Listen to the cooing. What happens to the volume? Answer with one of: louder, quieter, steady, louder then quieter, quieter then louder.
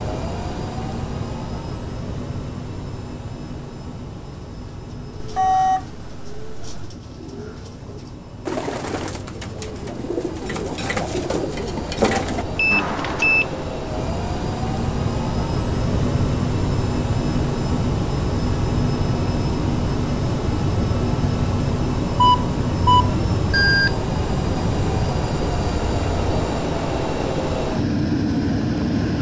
louder.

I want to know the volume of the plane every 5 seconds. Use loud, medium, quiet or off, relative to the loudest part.
medium, quiet, medium, loud, loud, loud.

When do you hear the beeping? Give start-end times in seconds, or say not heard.
5.2-7.0, 12.6-13.4, 22.1-23.9.